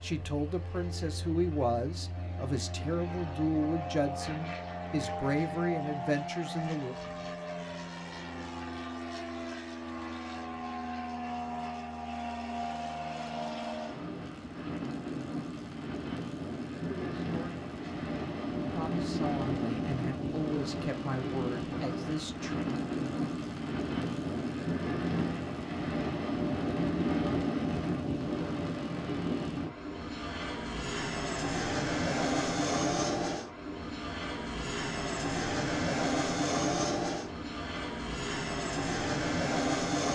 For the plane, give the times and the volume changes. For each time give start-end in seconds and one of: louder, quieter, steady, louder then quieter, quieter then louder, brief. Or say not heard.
0.0-40.1 louder.